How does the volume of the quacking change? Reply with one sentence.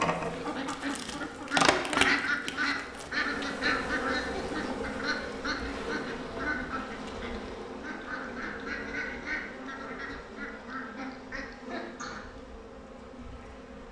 The volume of the quacking goes down.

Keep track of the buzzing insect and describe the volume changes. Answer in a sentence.
The volume of the buzzing insect goes down.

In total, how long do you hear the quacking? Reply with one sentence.
The quacking can be heard for 12 seconds in total.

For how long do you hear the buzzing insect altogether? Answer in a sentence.
You can hear the buzzing insect for 14 seconds altogether.